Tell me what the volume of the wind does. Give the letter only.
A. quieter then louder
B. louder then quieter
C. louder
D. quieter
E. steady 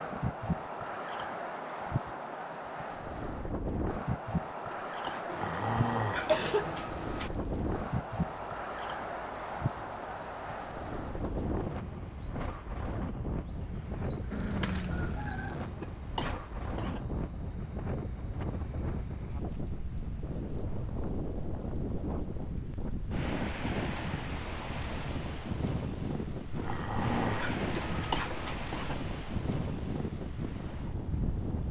E.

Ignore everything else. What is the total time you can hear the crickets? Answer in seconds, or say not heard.
26 s.